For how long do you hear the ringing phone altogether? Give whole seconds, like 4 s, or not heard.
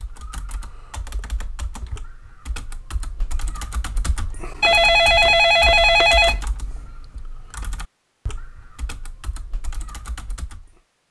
2 s.